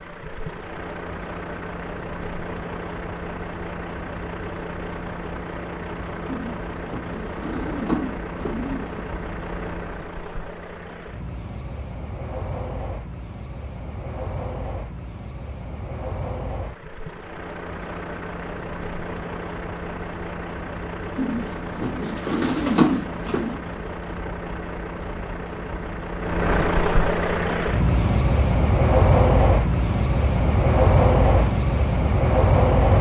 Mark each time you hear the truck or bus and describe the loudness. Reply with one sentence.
The truck or bus can be heard from 0.0 to 32.9 s, getting louder.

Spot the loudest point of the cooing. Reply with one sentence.
The volume of the cooing peaks at 23 seconds.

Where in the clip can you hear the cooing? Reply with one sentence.
The cooing can be heard from 6.2 to 9.1 s and from 21.1 to 23.6 s.